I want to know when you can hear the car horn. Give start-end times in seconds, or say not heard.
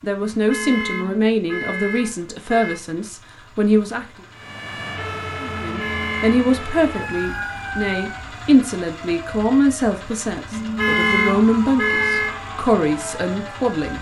0.3-2.8, 5.5-6.5, 10.5-12.3.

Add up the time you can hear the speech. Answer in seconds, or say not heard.
13 s.